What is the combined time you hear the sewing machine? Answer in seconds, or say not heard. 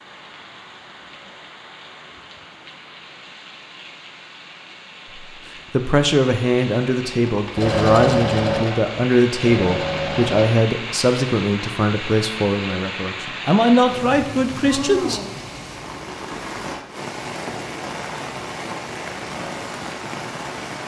3 s.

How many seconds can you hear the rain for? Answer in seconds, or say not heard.
21 s.